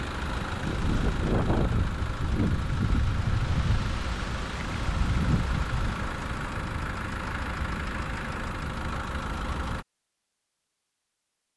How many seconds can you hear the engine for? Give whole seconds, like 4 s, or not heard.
10 s.